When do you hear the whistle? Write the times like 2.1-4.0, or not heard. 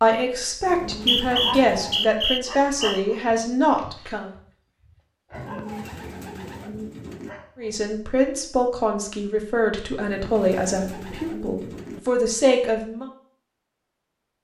0.8-3.0.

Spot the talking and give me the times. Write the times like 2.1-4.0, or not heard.
0.0-4.3, 7.5-13.1.